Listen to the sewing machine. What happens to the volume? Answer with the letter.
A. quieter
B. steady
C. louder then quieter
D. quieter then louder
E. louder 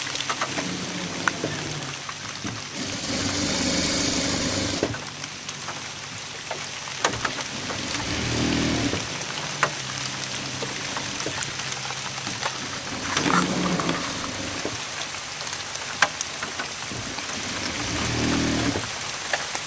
D.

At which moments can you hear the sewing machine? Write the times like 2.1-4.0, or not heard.
0.0-19.6.